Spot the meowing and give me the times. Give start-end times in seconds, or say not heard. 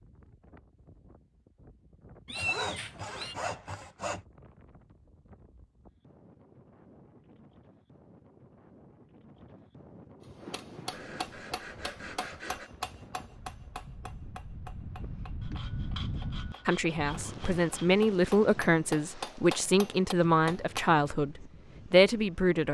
2.2-3.4.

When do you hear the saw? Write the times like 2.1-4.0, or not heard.
2.4-4.2, 10.9-12.7, 15.4-18.0.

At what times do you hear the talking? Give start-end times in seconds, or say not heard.
16.6-22.6.